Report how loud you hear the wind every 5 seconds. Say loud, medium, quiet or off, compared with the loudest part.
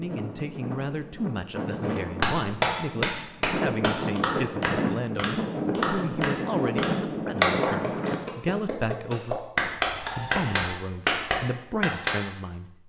loud, loud, off.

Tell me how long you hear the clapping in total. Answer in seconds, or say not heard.
10 s.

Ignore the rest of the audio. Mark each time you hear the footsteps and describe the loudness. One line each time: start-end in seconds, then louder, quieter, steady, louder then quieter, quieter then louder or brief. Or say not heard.
not heard.